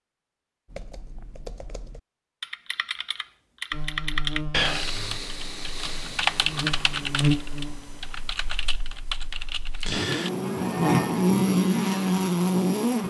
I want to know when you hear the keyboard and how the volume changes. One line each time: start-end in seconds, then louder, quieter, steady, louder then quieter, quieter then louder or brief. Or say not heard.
0.7-10.3 louder then quieter.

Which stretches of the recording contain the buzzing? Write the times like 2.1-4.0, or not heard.
3.7-13.0.